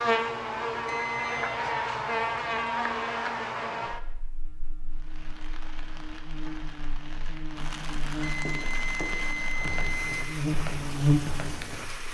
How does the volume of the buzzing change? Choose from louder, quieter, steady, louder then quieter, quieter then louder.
quieter then louder.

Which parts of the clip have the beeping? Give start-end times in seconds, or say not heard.
0.8-1.6, 8.2-10.2.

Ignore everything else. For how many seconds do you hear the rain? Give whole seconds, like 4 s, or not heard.
7 s.